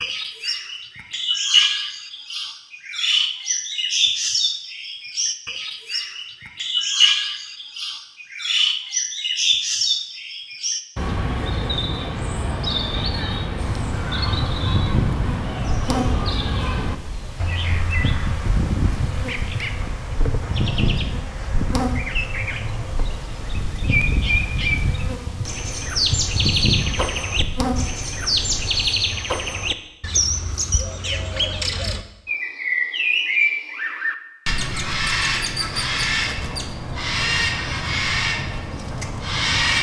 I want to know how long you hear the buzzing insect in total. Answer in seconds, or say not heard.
15 s.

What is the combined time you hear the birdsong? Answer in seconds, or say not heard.
40 s.